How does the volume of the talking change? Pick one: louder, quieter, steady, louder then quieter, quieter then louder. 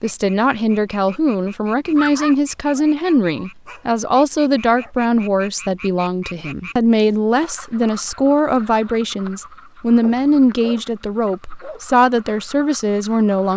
steady.